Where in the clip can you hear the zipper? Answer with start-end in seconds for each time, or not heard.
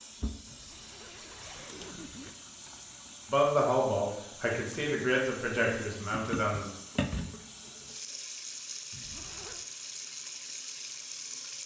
0.5-2.3, 8.9-9.7.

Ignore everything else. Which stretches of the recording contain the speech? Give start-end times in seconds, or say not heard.
3.3-6.7.